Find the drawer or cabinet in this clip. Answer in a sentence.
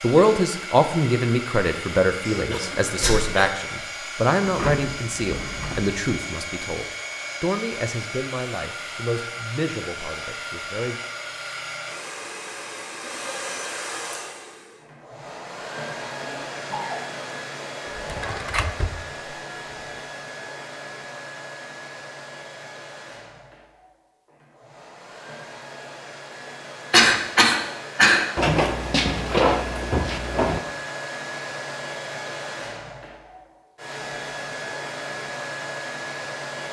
The drawer or cabinet can be heard from 4.4 to 6.0 s, from 17.9 to 19.0 s and from 28.4 to 30.6 s.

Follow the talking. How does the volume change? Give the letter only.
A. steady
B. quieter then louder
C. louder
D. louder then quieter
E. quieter
E.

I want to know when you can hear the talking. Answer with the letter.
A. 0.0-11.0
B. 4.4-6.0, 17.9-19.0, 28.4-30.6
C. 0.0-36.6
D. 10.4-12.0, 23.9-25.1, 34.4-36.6
A.